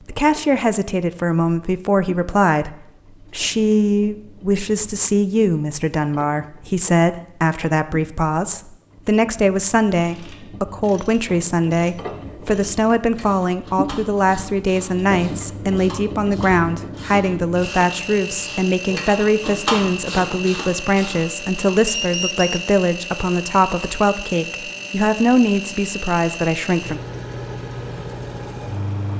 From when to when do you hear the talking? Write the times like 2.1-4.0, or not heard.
0.1-27.0.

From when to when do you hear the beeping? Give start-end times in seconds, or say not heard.
21.9-22.7.